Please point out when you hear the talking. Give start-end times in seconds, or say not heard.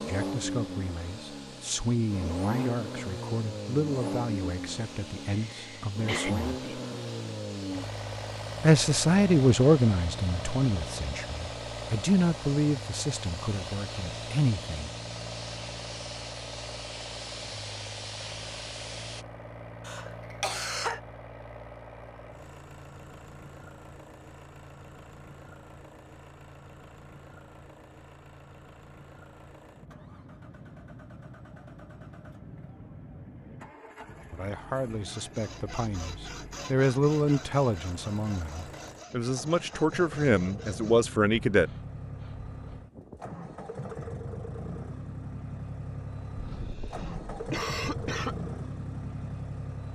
0.1-6.8, 8.6-14.9, 34.3-41.7.